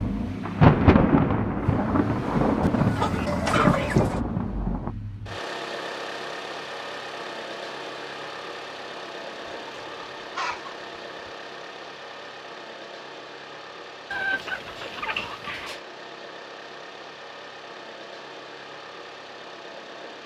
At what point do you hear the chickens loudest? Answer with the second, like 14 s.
4 s.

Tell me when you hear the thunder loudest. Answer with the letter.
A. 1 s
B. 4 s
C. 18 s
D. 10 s
A.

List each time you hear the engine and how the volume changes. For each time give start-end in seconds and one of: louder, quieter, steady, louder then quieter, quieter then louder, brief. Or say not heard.
0.0-20.2 quieter.